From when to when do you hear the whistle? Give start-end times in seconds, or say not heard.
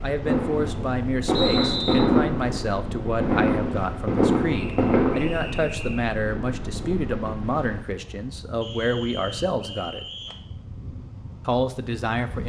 1.3-2.1, 4.5-6.0, 8.6-10.4.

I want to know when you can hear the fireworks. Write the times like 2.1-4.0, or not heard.
0.2-5.7.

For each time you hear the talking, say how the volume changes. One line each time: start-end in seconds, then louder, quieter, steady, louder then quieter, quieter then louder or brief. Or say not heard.
0.0-10.1 steady
11.4-12.4 brief.